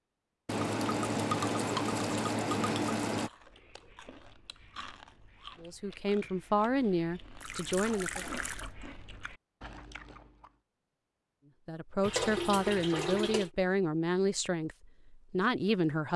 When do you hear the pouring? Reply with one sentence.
You can hear the pouring from 0.5 to 3.3 s, from 7.4 to 8.7 s and from 12.0 to 13.5 s.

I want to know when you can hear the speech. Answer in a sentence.
The speech can be heard from 5.6 to 8.2 s and from 11.7 to 16.1 s.